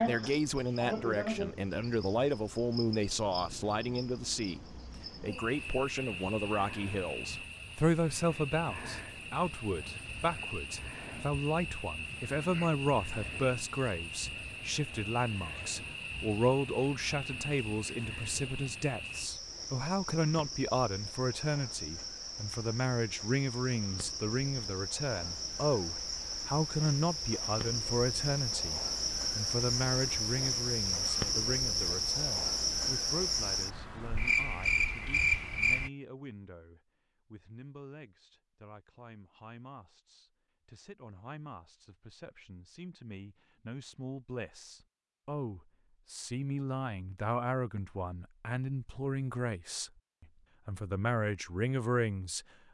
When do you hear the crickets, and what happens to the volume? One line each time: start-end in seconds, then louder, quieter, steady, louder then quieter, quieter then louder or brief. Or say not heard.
0.0-35.9 louder.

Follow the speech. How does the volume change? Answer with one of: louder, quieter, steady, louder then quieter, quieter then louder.
quieter then louder.